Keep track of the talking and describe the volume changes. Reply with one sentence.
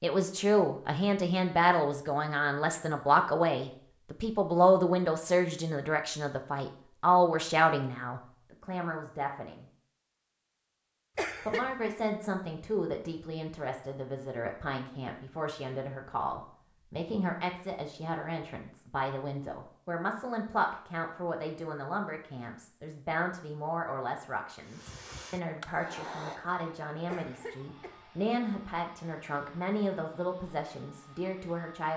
The loudness of the talking goes down.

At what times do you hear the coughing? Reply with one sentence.
You can hear the coughing from 11.2 to 11.7 s and from 27.1 to 28.1 s.